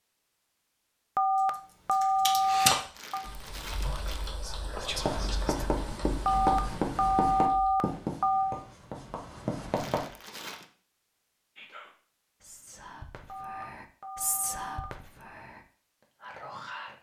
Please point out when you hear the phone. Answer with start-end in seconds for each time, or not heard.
1.1-3.2, 6.2-8.6, 13.2-15.3.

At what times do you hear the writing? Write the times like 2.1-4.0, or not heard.
5.0-10.1.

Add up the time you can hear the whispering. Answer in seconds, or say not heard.
7 s.